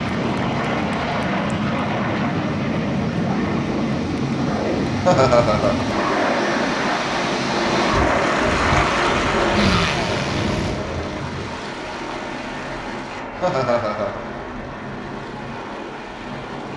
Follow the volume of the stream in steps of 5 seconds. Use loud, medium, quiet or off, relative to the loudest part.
quiet, loud, medium, quiet.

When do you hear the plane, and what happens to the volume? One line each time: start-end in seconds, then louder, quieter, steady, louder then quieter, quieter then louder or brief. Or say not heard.
0.0-16.7 quieter.